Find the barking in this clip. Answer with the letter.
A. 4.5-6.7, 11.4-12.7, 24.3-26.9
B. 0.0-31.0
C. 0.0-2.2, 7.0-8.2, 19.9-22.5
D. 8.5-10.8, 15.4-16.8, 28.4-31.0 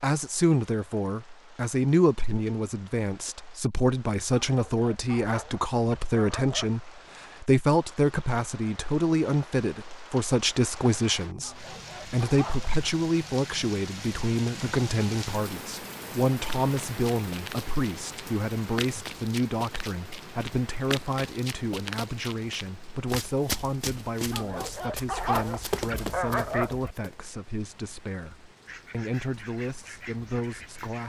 A.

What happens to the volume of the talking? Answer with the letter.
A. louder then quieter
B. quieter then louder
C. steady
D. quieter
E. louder
D.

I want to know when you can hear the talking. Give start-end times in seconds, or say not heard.
0.0-31.0.